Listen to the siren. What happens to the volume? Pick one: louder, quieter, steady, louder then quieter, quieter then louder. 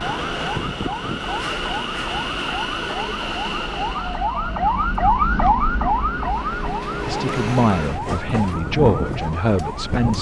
louder then quieter.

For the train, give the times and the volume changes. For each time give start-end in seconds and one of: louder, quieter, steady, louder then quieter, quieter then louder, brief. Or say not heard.
0.0-10.1 quieter then louder.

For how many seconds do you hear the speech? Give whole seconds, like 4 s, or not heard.
3 s.